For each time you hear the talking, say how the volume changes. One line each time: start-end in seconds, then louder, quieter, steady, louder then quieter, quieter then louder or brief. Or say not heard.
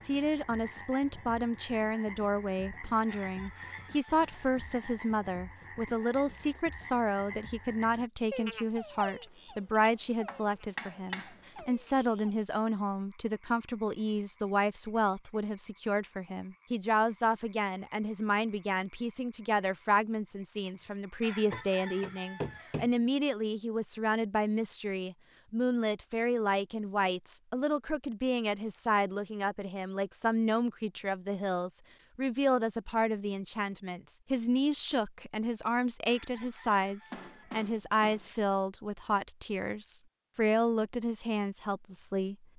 0.0-42.4 steady.